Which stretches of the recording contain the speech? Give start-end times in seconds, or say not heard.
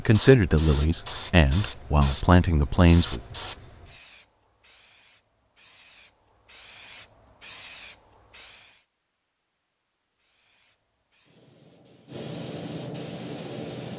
0.0-3.2.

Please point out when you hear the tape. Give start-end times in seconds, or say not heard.
not heard.